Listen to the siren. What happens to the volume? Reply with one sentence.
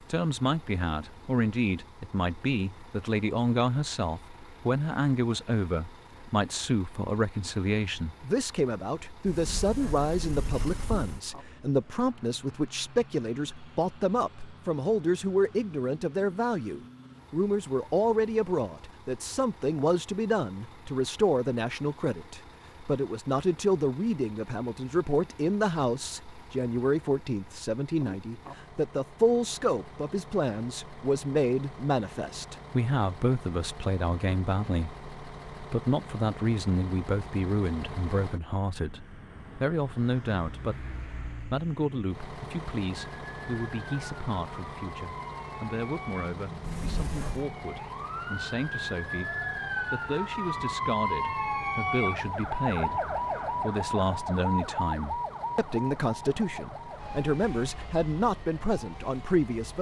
The volume of the siren goes up, then down.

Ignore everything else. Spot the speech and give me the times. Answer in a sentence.
You can hear the speech from 0.1 to 59.7 s.